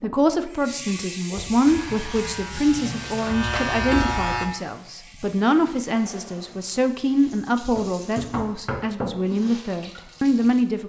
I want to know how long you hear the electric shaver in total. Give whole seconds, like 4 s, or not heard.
3 s.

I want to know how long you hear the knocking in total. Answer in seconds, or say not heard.
2 s.